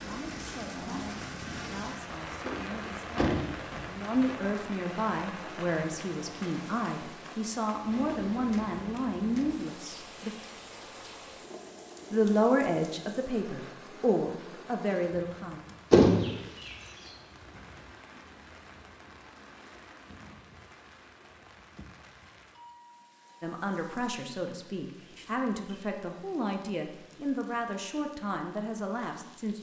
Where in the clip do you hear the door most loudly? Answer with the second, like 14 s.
16 s.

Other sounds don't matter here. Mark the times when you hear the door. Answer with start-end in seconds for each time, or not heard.
2.5-3.9, 15.9-16.8.